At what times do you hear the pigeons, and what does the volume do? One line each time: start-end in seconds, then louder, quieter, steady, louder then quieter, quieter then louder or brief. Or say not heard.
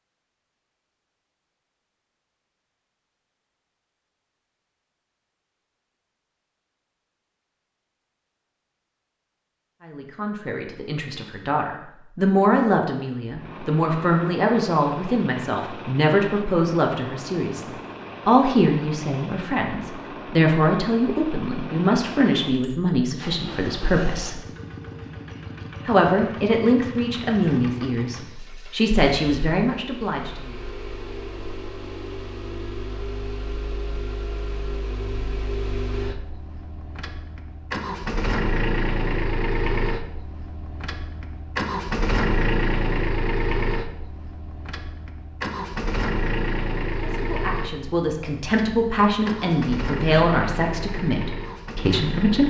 not heard.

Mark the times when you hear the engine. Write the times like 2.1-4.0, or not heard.
13.2-52.4.